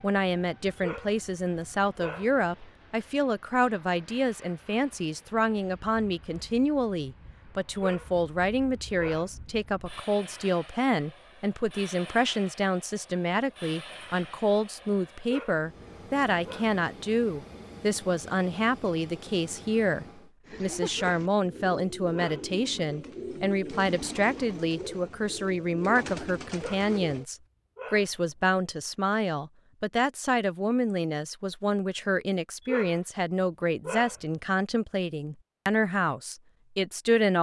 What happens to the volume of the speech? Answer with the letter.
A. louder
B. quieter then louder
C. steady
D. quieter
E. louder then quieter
C.